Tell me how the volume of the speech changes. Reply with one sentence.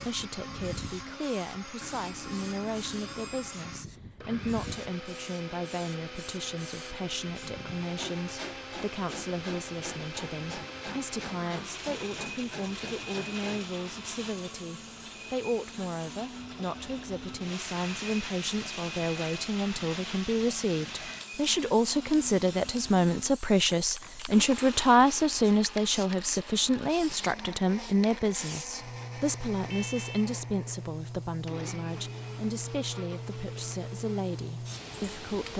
The loudness of the speech goes up, then down.